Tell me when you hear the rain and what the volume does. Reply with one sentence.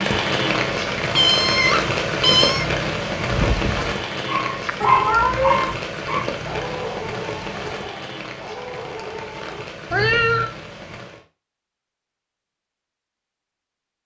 The rain can be heard from 0.0 to 11.2 s, getting quieter.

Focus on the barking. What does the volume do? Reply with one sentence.
The volume of the barking goes up, then down.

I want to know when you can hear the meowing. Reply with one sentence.
You can hear the meowing from 1.1 to 2.6 s, from 4.8 to 5.8 s and from 9.9 to 10.5 s.